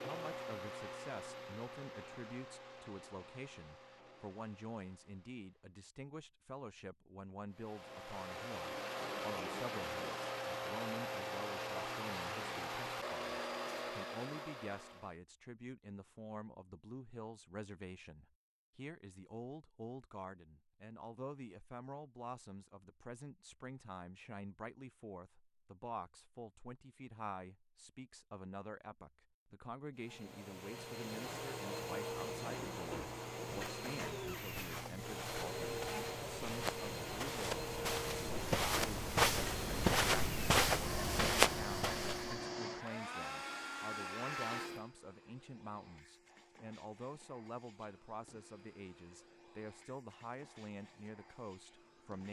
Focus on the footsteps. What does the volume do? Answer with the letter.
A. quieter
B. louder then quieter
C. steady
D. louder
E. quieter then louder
D.